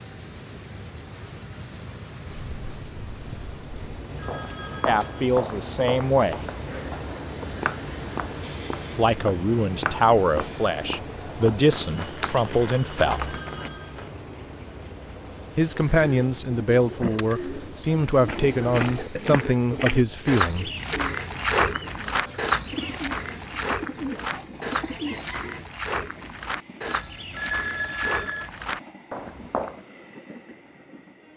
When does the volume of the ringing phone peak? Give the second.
28 s.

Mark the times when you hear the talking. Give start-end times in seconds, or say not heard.
4.8-6.4, 8.9-13.3, 15.6-20.7.